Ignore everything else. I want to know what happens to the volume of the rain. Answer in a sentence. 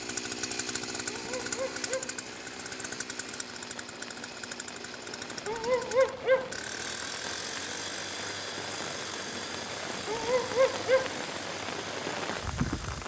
The loudness of the rain goes up.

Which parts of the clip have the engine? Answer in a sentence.
The engine can be heard from 0.0 to 13.0 s.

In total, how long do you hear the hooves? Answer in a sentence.
The hooves can't be heard in this clip.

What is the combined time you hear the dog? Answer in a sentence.
The dog can be heard for 3 seconds in total.